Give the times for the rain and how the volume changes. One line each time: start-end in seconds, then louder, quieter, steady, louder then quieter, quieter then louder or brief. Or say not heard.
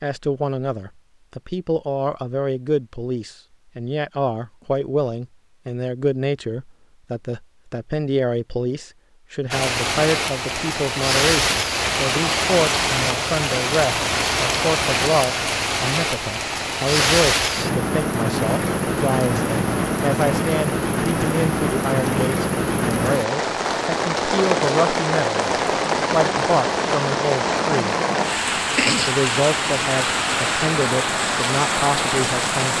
9.5-32.7 steady.